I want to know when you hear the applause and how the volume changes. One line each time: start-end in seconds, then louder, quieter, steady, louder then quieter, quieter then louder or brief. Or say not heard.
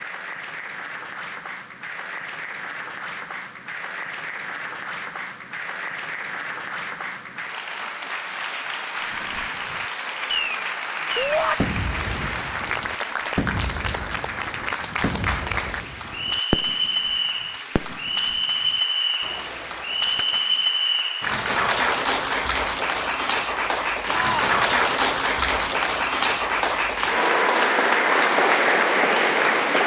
0.0-29.8 louder.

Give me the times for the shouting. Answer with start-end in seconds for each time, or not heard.
11.2-11.6, 24.1-24.6.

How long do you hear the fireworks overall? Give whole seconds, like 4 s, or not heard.
11 s.